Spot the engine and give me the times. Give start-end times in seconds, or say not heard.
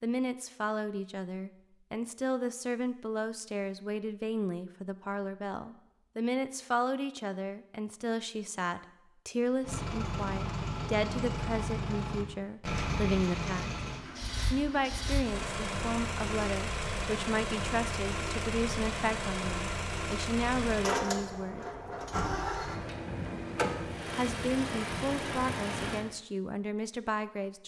9.6-26.1.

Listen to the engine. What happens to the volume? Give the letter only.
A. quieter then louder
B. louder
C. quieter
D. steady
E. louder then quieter
D.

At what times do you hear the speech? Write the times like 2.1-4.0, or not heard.
0.0-13.8, 14.5-21.6, 24.1-27.6.